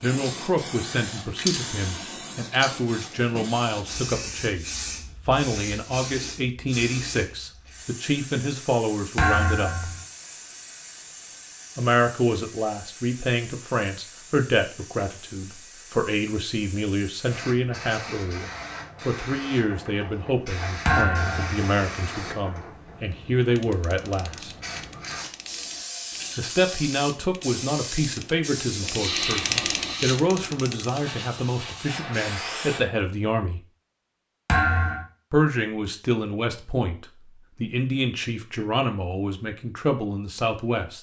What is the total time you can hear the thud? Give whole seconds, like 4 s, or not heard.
2 s.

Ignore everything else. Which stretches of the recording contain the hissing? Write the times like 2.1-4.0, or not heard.
0.0-32.8.